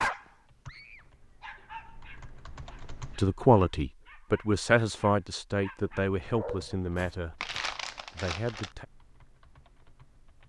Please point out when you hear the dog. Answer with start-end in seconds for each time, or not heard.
0.0-7.6.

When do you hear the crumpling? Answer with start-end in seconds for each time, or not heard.
7.4-8.8.